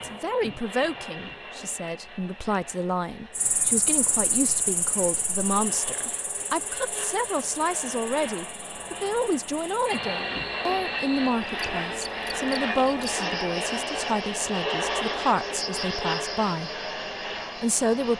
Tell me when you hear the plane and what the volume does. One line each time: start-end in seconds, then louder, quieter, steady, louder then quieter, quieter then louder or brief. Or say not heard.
0.0-18.1 louder.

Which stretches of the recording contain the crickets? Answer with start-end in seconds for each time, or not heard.
3.4-18.1.